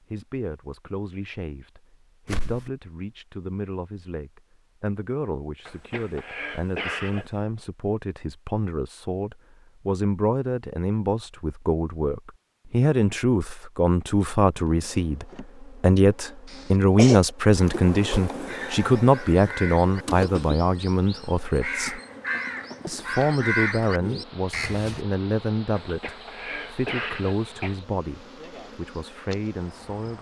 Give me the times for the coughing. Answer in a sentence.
The coughing can be heard from 5.7 to 7.3 s, from 16.4 to 17.3 s and from 25.8 to 27.8 s.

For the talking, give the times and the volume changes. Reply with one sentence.
You can hear the talking from 0.1 to 22.0 s, getting louder; and from 22.9 to 30.1 s, getting quieter.